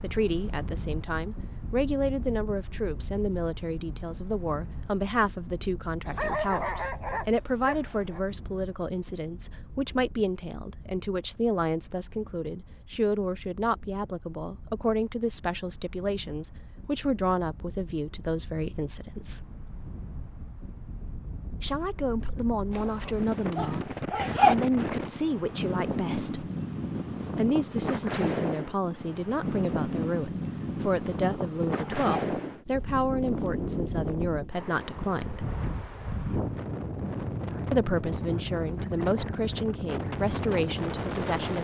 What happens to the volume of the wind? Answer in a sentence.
The loudness of the wind goes down, then up.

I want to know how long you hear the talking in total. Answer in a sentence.
The talking can be heard for 36 seconds in total.